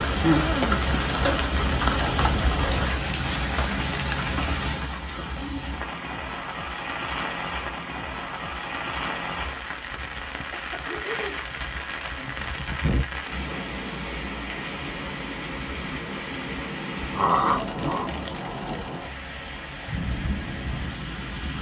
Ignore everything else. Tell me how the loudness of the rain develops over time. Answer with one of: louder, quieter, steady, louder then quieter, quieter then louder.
quieter.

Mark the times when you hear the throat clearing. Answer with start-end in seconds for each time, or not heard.
0.2-0.7, 10.5-11.4, 17.1-18.1.